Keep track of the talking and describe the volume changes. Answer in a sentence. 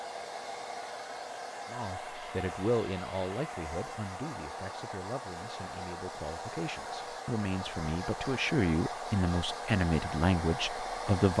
The loudness of the talking goes down, then up.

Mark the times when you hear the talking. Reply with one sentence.
You can hear the talking from 1.7 to 11.3 s.